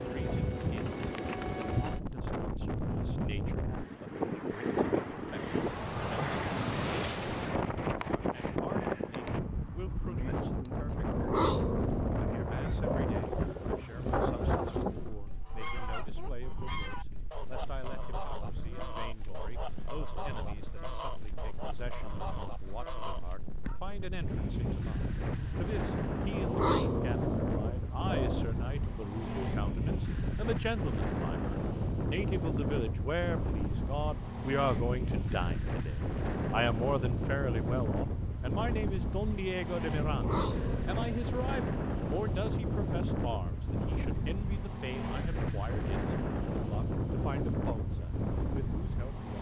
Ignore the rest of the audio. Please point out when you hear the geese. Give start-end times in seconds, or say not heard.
12.2-23.8.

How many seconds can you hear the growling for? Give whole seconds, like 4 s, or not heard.
6 s.